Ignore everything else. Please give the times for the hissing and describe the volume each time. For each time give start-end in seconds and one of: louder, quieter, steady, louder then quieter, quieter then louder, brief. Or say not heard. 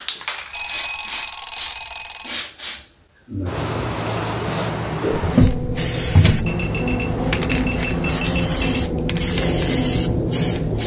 0.0-10.8 louder.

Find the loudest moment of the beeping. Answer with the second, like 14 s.
1 s.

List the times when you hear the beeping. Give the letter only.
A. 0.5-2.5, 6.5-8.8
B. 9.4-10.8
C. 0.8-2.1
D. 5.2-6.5
A.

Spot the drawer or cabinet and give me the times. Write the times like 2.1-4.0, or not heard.
5.2-6.5.